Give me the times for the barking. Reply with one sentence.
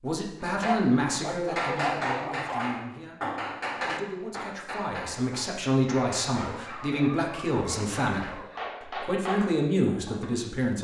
The barking can be heard from 0.6 to 2.6 s and from 6.3 to 8.8 s.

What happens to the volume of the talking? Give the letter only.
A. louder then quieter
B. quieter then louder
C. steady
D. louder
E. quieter
B.